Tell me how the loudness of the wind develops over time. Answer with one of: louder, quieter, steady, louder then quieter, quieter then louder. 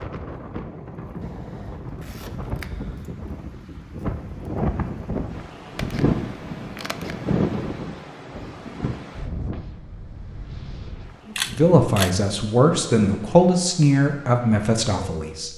louder then quieter.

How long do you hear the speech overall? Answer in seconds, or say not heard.
4 s.